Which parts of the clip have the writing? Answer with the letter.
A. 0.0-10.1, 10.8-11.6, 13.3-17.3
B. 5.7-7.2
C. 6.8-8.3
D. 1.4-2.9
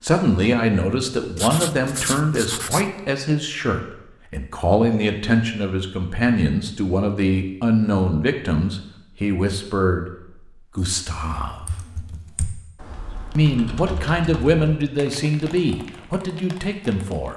D.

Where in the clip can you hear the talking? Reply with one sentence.
The talking can be heard from 0.0 to 10.1 s, from 10.8 to 11.6 s and from 13.3 to 17.3 s.